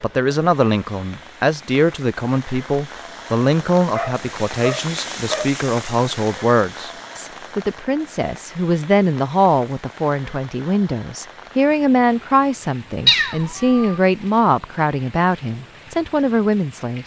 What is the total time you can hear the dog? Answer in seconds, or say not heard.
2 s.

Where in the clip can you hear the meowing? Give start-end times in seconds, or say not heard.
13.1-14.0.